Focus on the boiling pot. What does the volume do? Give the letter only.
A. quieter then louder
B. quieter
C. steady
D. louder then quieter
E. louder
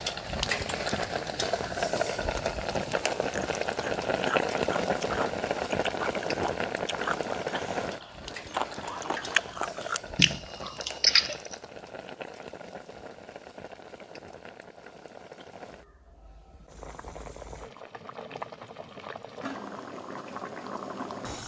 A.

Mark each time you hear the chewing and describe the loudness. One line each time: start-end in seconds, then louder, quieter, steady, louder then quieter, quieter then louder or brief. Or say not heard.
3.1-11.6 louder.